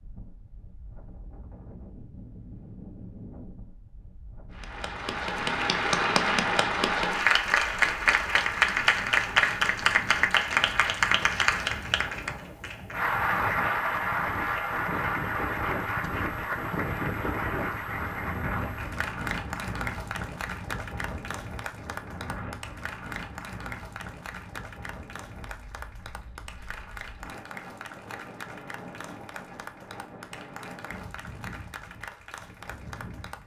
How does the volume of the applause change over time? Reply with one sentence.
The loudness of the applause goes down.